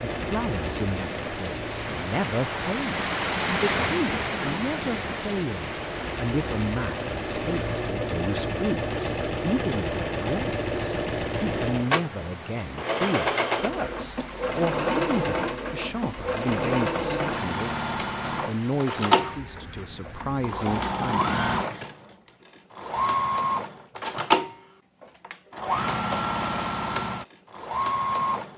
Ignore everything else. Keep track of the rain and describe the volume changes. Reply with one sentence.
The loudness of the rain goes down.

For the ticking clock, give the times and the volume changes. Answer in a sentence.
The ticking clock can't be heard in this clip.